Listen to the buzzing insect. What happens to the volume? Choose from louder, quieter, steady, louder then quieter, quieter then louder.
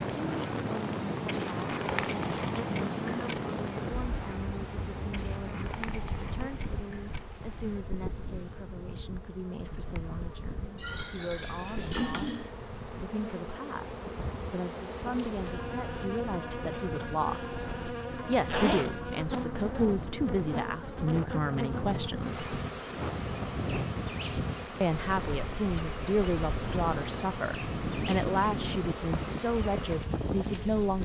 quieter then louder.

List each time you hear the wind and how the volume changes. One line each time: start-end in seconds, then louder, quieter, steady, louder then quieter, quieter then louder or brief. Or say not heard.
0.0-30.9 quieter then louder.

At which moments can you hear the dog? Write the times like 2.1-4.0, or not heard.
not heard.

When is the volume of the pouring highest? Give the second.
12 s.